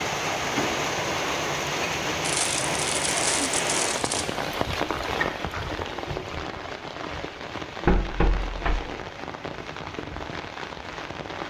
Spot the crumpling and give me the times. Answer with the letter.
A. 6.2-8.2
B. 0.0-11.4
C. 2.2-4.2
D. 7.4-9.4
C.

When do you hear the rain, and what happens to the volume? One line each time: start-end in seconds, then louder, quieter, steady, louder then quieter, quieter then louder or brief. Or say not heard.
0.0-11.4 quieter.